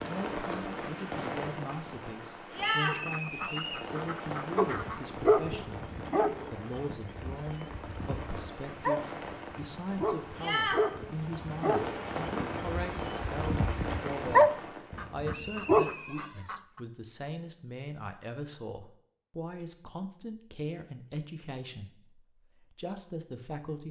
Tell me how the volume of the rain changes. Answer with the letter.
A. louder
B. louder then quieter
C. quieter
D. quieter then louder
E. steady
D.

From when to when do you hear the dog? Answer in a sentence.
The dog can be heard from 4.5 to 15.9 s.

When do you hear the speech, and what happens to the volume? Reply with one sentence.
The speech can be heard from 0.1 to 23.8 s, at a steady volume.